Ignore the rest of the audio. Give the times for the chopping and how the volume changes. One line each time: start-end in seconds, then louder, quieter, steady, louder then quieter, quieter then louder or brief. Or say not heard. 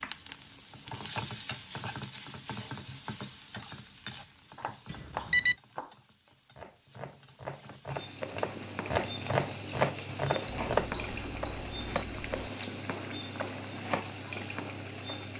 4.2-10.9 quieter then louder.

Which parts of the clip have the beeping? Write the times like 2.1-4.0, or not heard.
4.9-5.5, 10.4-12.5.